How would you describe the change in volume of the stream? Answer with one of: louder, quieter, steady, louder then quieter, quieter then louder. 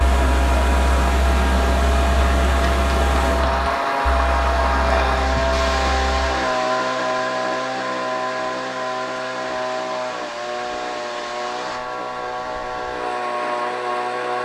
quieter.